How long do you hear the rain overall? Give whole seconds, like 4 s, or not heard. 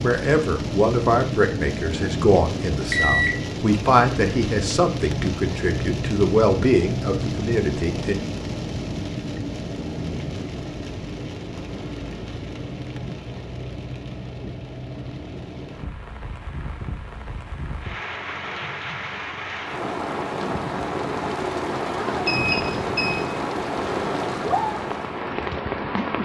26 s.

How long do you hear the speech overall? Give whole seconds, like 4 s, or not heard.
8 s.